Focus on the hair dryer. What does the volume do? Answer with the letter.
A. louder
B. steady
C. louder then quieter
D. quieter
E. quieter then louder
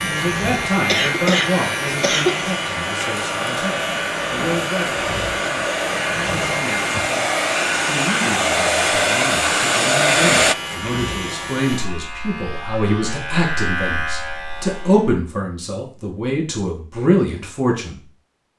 A.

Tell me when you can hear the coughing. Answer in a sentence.
The coughing can be heard from 0.7 to 2.5 s.